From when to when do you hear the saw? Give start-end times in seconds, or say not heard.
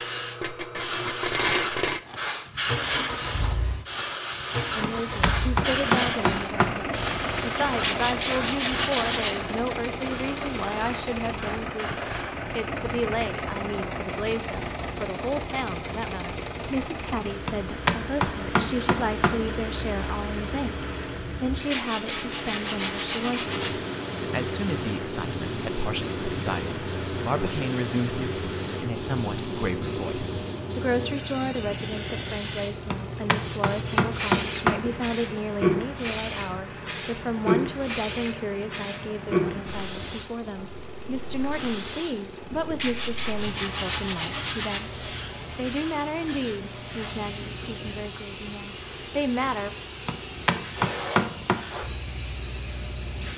7.8-9.3, 21.7-23.7, 42.8-44.8.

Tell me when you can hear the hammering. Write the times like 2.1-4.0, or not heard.
4.8-6.7, 17.4-19.4, 32.9-34.8, 50.0-51.6.